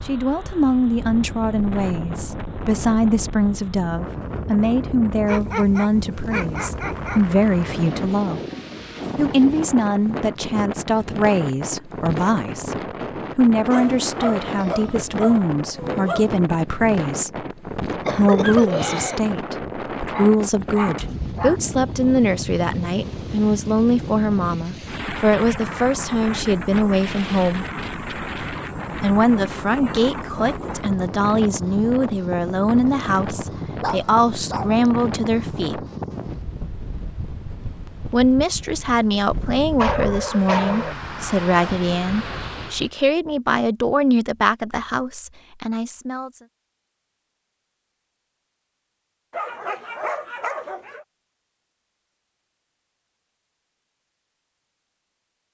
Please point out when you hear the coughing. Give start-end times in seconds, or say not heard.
17.9-19.2.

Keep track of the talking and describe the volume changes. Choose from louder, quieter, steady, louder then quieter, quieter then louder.
steady.